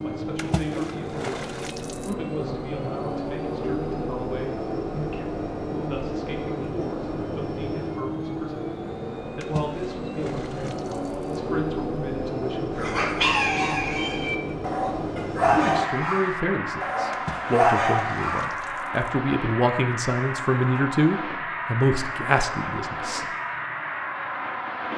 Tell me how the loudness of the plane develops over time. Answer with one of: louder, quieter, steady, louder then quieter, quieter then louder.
steady.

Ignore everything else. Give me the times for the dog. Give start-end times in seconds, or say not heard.
12.8-18.5.